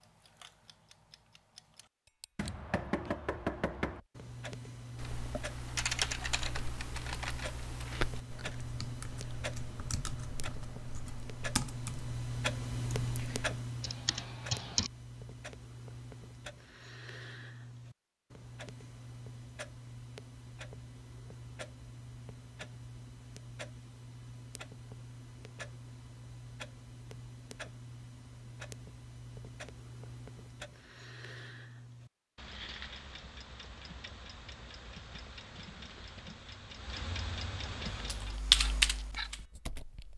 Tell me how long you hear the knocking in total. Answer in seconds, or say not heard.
2 s.